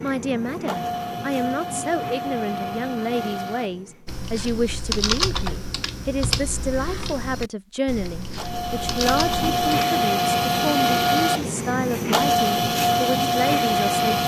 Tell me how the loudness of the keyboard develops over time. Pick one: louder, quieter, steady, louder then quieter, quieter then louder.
quieter.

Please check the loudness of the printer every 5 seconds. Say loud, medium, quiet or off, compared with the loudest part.
medium, loud, loud.